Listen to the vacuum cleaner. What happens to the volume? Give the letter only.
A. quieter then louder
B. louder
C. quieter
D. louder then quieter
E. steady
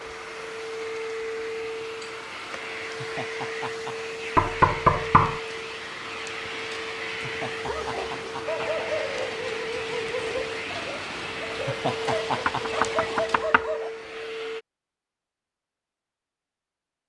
E.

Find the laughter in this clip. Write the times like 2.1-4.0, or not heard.
2.8-4.0, 7.2-9.3, 11.5-12.8.